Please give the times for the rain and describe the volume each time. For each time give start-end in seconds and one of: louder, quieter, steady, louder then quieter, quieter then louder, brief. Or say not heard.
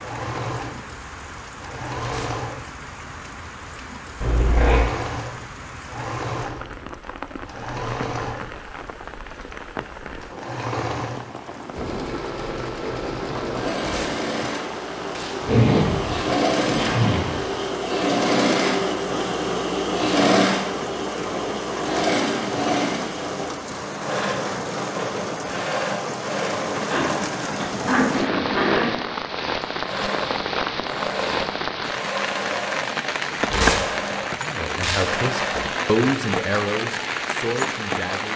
0.0-38.3 louder.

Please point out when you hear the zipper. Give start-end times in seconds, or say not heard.
4.2-4.8, 15.4-17.4, 26.9-28.9.